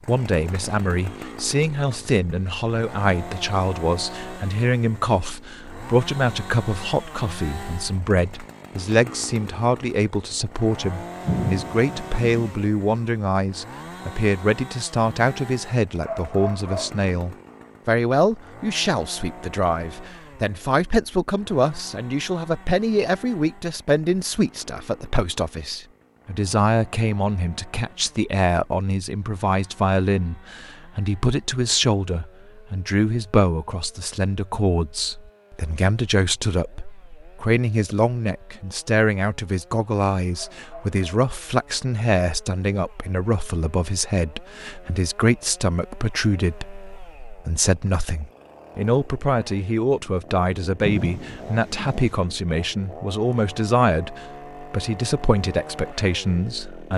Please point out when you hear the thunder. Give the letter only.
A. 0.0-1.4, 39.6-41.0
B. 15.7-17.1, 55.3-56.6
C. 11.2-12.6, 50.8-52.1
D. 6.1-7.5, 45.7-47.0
C.